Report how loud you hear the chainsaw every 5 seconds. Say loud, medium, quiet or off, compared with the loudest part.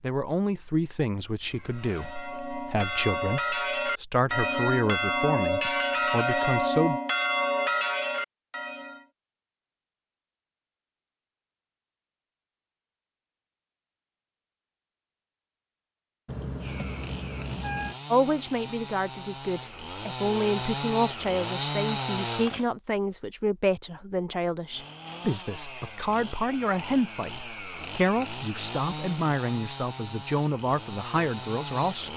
off, off, off, medium, loud, medium, medium.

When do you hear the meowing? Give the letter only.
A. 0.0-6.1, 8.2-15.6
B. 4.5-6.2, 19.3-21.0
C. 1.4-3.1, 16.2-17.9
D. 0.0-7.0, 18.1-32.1
C.